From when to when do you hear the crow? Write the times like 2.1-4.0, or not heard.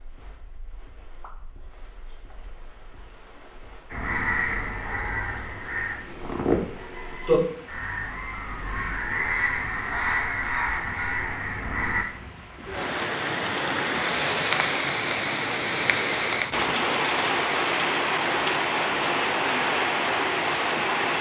3.9-12.1.